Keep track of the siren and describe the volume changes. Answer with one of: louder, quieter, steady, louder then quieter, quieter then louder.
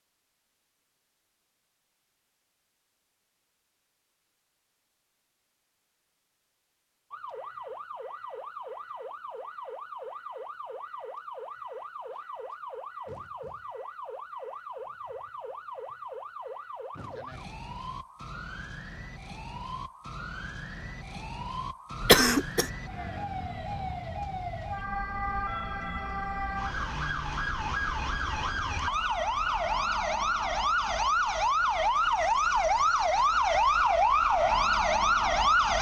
louder.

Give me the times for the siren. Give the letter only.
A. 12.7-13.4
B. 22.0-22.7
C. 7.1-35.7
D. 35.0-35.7
C.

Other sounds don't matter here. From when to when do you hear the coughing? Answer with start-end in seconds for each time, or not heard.
22.0-22.7.